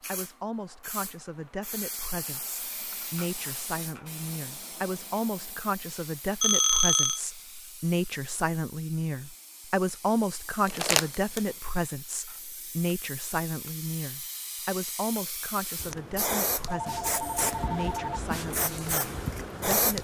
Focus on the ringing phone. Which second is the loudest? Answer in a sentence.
The loudest moment of the ringing phone is at 7 seconds.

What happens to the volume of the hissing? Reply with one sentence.
The volume of the hissing goes down, then up.